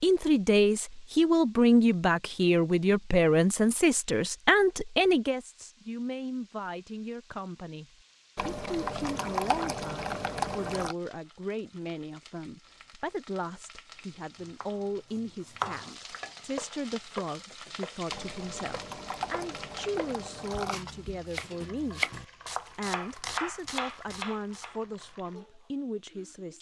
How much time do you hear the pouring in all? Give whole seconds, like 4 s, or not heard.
5 s.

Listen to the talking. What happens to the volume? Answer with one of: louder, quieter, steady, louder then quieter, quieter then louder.
quieter.